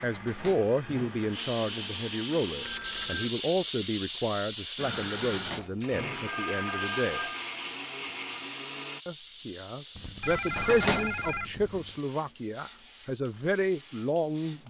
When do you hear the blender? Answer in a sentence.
The blender can be heard from 0.0 to 3.1 s and from 4.8 to 9.0 s.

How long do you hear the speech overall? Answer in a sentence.
You can hear the speech for 13 seconds altogether.